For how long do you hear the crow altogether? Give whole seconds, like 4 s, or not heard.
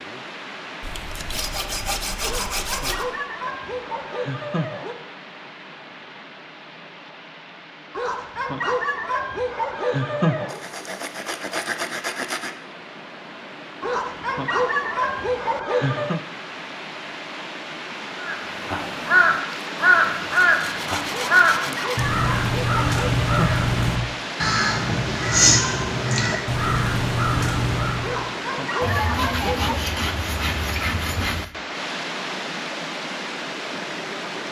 10 s.